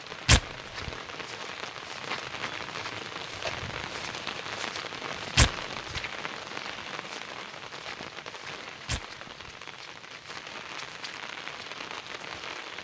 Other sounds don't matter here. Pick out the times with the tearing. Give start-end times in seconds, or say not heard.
0.2-0.9, 5.3-6.0, 8.8-9.5.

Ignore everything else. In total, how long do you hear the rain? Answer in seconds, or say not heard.
13 s.